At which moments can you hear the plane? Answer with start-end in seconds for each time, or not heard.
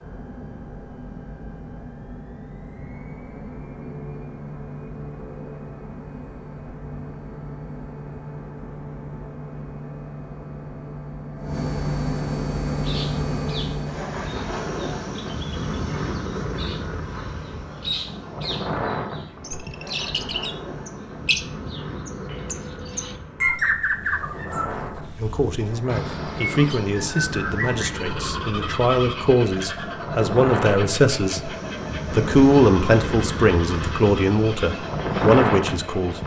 0.0-36.2.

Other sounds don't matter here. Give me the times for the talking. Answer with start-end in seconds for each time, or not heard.
25.1-31.5, 32.1-36.2.